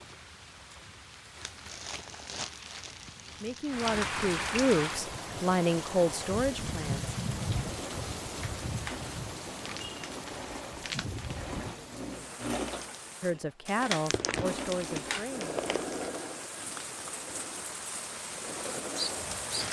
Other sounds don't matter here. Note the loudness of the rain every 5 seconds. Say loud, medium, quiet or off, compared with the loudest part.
loud, loud, medium, loud.